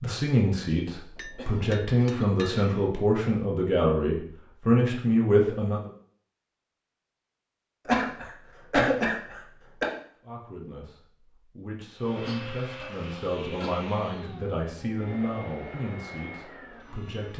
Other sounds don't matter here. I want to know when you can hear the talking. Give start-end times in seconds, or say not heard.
0.0-5.8, 10.2-17.3.